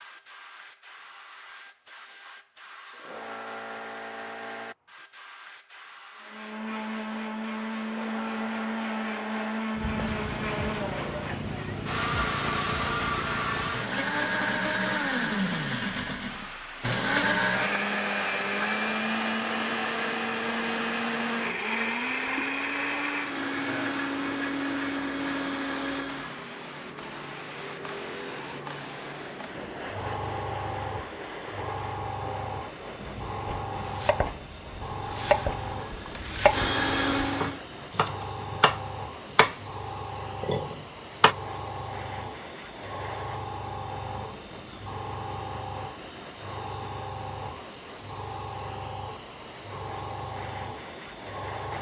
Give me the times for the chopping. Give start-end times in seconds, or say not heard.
33.5-39.5, 40.4-41.4.